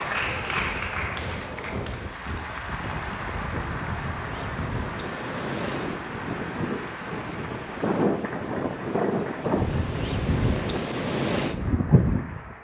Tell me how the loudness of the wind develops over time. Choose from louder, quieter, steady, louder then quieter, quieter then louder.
louder.